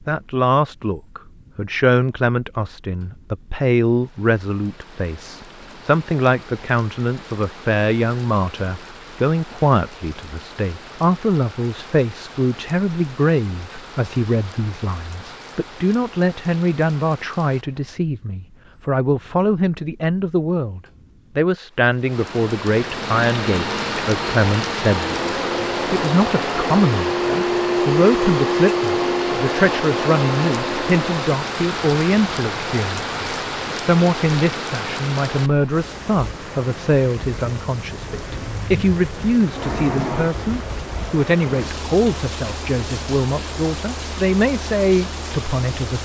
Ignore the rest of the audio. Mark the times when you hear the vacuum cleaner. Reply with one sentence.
The vacuum cleaner can be heard from 23.1 to 31.4 s.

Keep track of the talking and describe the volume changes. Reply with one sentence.
The loudness of the talking stays about the same.